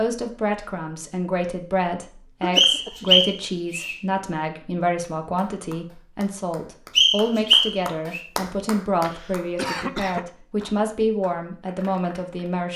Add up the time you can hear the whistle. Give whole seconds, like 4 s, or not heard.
3 s.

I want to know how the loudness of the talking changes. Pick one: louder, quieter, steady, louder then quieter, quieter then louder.
steady.